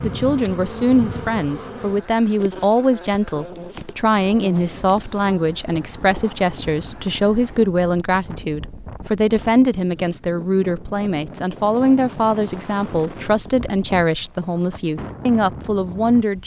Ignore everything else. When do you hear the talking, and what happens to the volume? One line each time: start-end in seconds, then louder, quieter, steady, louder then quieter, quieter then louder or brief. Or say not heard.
0.0-16.4 steady.